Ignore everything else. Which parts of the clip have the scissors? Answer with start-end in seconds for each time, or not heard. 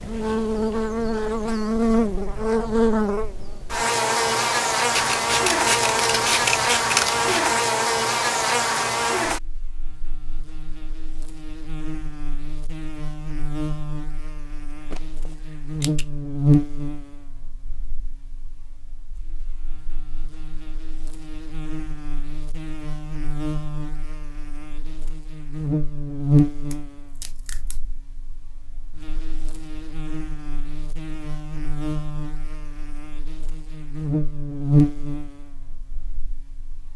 4.9-7.5, 14.9-16.1, 26.7-27.8.